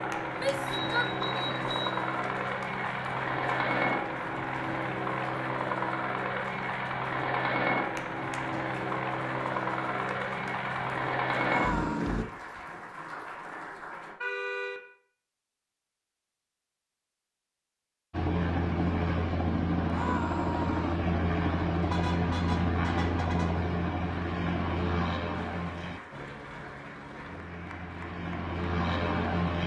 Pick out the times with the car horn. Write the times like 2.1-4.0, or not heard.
0.7-1.9, 14.2-14.8, 21.8-23.7.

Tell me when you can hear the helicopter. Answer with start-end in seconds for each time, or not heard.
0.0-12.2, 18.1-29.6.